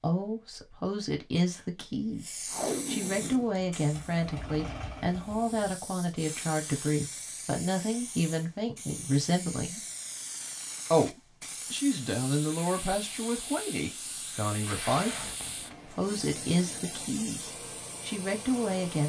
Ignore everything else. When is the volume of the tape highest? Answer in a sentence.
The volume of the tape peaks at 3 seconds.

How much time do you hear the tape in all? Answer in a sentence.
The tape can be heard for 2 seconds in total.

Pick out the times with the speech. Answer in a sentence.
The speech can be heard from 0.0 to 9.8 s, from 10.9 to 15.2 s and from 15.8 to 19.0 s.